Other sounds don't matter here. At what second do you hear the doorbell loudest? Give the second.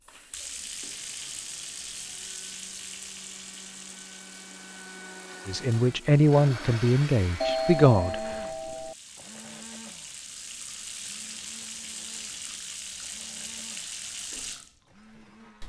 8 s.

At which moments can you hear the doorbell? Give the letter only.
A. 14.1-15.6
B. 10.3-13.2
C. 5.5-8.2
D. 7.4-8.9
D.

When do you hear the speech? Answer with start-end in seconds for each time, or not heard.
5.5-8.2.